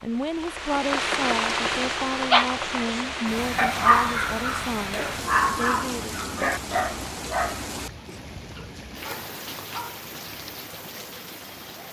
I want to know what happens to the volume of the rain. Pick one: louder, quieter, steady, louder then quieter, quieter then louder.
quieter.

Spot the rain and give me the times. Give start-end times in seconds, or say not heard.
0.0-11.8.